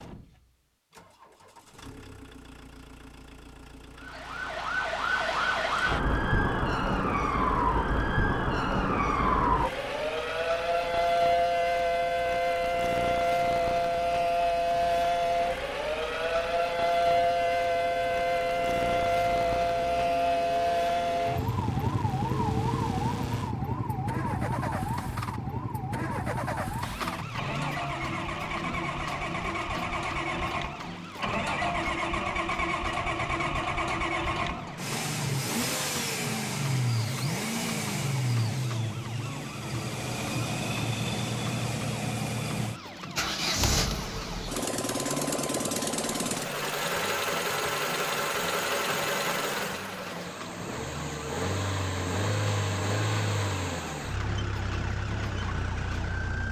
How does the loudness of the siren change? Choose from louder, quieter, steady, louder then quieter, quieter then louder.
quieter.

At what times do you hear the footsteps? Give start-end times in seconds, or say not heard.
not heard.